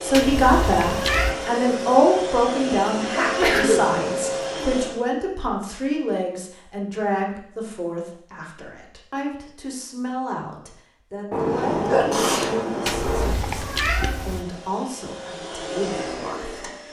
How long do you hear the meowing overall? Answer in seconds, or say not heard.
3 s.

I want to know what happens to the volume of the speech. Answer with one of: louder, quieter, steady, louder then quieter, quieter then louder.
quieter.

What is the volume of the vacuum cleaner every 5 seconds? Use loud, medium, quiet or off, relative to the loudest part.
loud, off, quiet, medium.